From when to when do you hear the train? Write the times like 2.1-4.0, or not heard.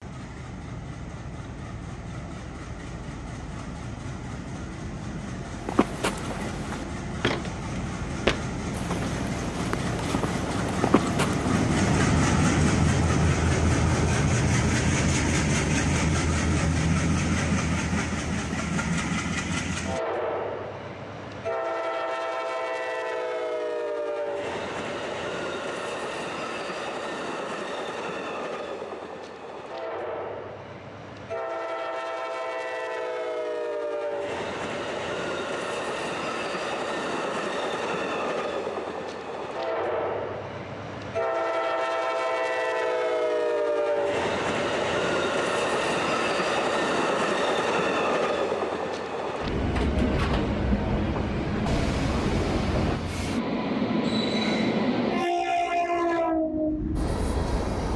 0.0-57.9.